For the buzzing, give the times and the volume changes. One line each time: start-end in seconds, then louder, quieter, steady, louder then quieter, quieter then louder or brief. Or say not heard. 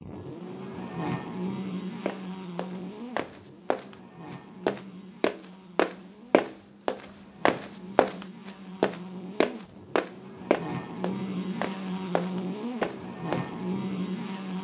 0.0-14.5 quieter then louder.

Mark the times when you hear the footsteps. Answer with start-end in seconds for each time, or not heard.
2.0-13.5.